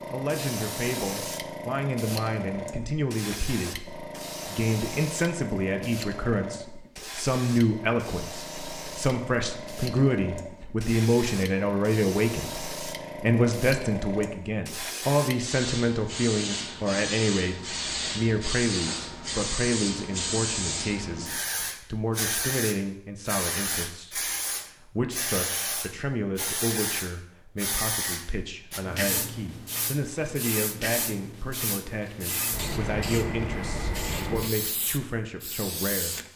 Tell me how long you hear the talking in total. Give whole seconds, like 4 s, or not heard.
36 s.